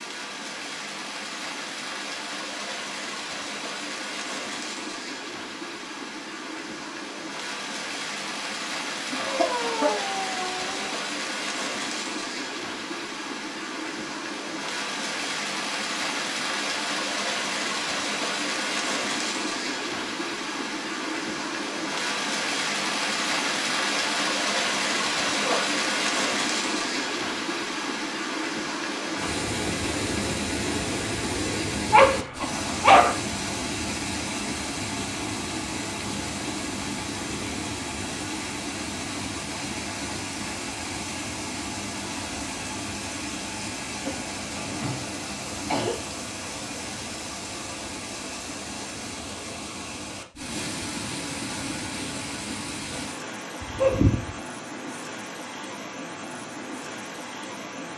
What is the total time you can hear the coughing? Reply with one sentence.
You can hear the coughing for 3 seconds altogether.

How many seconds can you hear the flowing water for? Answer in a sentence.
The flowing water can be heard for 58 seconds in total.